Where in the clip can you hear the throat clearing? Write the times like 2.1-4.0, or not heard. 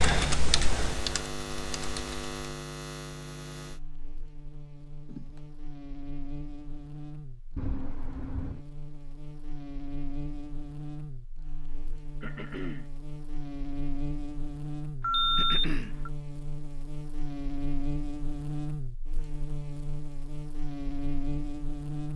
5.0-5.5, 12.2-12.9, 15.3-15.9.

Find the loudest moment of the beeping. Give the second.
15 s.